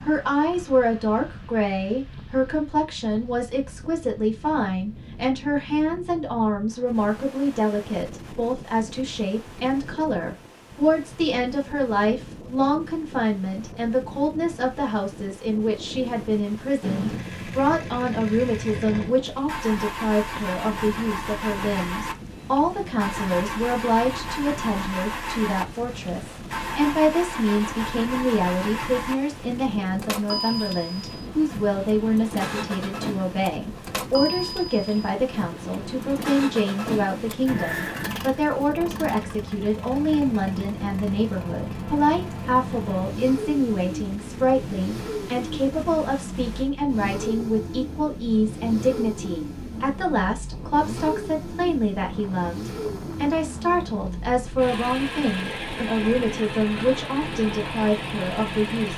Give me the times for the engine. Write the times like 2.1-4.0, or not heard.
16.8-58.9.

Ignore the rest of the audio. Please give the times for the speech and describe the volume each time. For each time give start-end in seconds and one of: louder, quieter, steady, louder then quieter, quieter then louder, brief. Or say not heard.
0.0-58.9 steady.